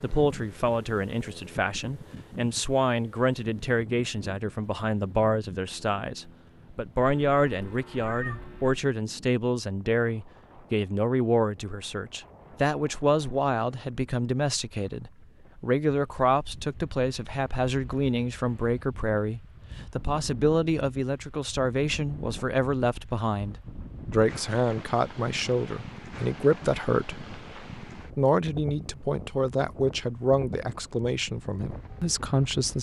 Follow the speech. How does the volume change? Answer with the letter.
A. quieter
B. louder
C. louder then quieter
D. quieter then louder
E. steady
E.